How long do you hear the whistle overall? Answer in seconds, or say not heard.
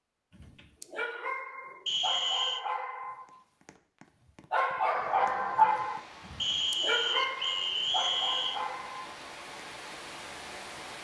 3 s.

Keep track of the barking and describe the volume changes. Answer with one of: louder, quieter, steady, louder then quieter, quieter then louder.
louder then quieter.